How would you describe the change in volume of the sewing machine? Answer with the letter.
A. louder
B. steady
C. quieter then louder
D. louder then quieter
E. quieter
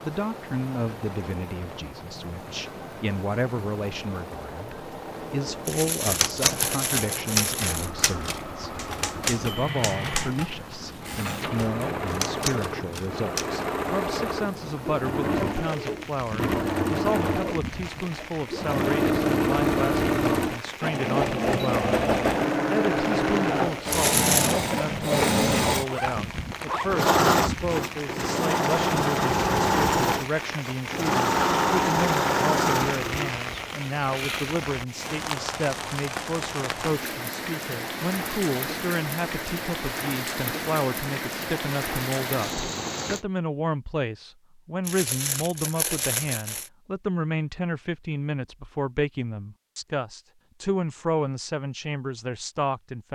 A.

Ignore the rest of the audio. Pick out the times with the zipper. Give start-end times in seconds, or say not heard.
25.9-27.1.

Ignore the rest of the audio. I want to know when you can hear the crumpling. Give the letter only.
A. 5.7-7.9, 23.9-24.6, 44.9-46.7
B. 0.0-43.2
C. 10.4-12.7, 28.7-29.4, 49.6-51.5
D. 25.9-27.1
A.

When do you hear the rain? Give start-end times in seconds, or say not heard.
0.0-43.2.